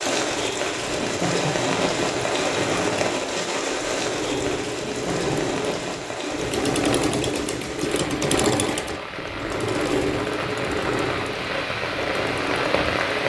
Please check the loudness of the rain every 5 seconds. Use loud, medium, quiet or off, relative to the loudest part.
loud, medium, loud.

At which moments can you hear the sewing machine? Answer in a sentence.
You can hear the sewing machine from 0.1 to 13.0 s.